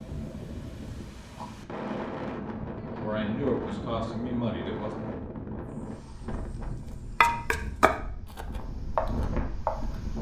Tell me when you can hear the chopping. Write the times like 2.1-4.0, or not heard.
6.0-9.9.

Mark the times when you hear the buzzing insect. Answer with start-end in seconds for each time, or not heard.
not heard.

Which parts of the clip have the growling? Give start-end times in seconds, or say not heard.
not heard.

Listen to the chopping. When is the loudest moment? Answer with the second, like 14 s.
7 s.